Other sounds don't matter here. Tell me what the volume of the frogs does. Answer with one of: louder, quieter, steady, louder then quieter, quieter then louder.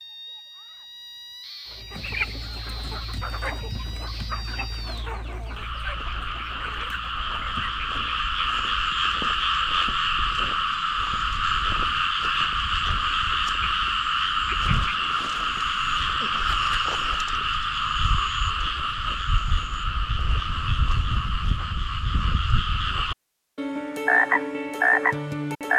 louder.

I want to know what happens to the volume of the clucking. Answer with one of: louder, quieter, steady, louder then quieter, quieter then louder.
quieter.